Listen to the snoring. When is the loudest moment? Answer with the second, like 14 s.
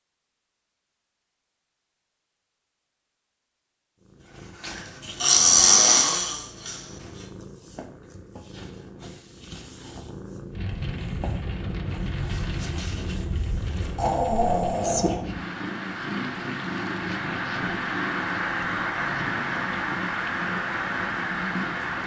6 s.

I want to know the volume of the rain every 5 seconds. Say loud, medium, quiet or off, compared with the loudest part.
off, off, medium, loud, loud.